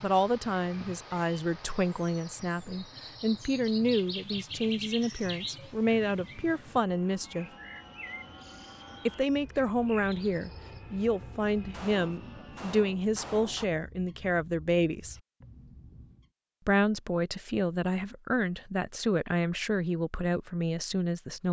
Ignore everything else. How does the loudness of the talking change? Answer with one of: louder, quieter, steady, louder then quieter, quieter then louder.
steady.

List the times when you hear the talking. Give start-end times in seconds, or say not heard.
0.0-7.5, 9.1-15.2, 16.6-21.4.